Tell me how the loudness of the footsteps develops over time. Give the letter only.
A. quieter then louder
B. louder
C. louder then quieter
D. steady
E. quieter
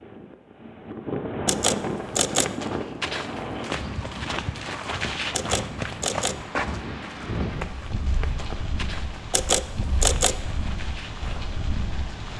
E.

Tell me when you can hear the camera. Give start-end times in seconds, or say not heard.
1.4-2.5, 5.3-6.5, 9.3-10.4.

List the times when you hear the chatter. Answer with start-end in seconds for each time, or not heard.
not heard.